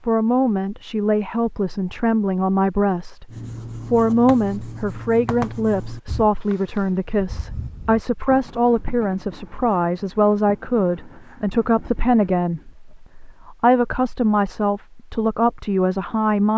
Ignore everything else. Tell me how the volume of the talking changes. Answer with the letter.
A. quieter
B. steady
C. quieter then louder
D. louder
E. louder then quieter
B.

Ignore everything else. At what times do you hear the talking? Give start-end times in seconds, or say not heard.
0.1-3.3, 3.9-16.5.